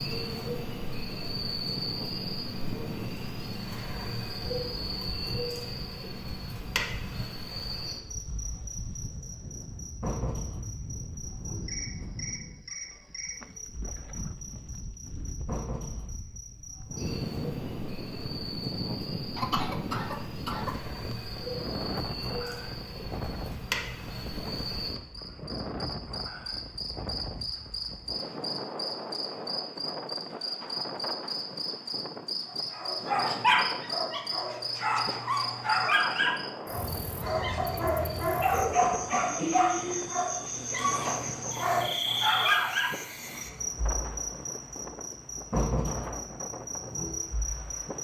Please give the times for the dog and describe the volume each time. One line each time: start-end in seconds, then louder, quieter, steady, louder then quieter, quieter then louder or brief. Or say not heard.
32.7-43.0 steady.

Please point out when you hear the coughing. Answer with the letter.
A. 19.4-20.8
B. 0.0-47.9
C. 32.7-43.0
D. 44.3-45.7
A.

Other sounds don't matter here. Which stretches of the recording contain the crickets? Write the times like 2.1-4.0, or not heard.
0.0-47.9.